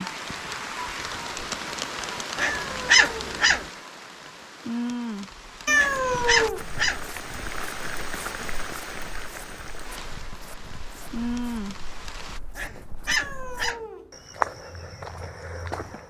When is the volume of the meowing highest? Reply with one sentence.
The loudest moment of the meowing is at 6 seconds.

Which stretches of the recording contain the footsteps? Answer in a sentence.
You can hear the footsteps from 6.0 to 16.0 s.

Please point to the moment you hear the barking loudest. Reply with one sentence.
The volume of the barking peaks at 3 seconds.